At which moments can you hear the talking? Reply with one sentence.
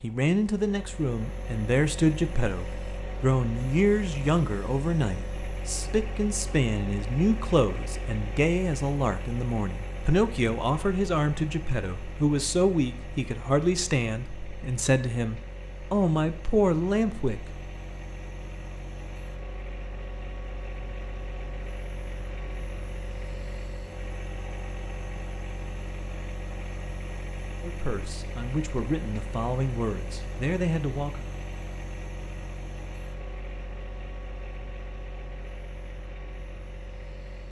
You can hear the talking from 0.0 to 17.5 s and from 27.6 to 31.2 s.